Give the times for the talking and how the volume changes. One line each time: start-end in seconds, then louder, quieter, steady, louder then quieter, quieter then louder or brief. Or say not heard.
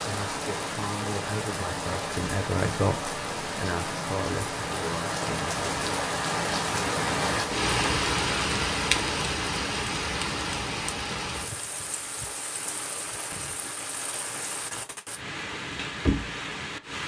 0.1-6.0 louder then quieter.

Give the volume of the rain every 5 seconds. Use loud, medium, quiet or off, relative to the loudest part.
medium, loud, medium, medium.